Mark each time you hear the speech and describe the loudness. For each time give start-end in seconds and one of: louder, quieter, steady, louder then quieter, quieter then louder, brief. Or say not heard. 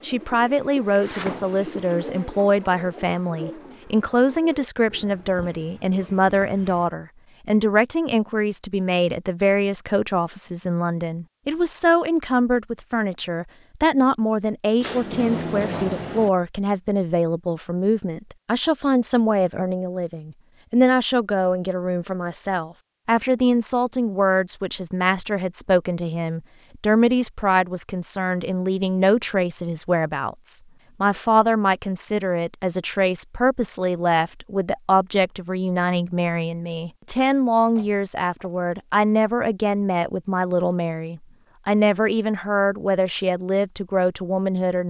0.0-44.8 steady.